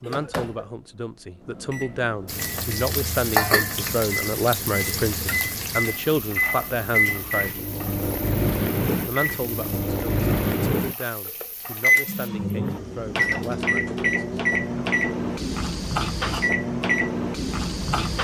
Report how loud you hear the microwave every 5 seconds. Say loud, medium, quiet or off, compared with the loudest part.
quiet, loud, loud, loud.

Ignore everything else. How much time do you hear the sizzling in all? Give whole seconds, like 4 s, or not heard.
10 s.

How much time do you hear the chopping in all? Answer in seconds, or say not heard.
not heard.